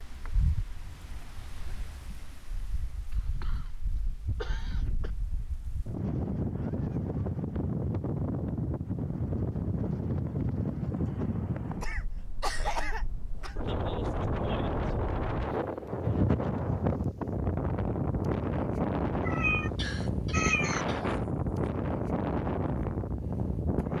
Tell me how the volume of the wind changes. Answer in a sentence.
The loudness of the wind goes up.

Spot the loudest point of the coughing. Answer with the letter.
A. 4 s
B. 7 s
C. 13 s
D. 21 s
C.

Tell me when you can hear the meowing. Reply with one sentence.
You can hear the meowing from 19.2 to 20.9 s.